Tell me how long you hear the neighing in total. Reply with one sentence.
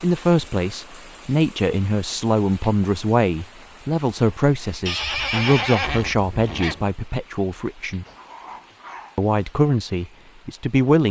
The neighing can be heard for 2 seconds in total.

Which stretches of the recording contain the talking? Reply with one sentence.
The talking can be heard from 0.0 to 8.1 s and from 9.2 to 11.0 s.